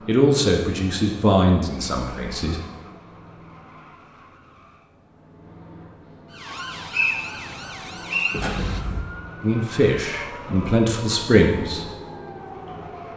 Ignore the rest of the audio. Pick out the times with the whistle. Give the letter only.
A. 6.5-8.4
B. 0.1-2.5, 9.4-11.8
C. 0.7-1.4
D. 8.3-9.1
A.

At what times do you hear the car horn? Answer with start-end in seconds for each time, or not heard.
8.3-9.1.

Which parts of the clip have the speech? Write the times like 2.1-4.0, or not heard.
0.1-2.5, 9.4-11.8.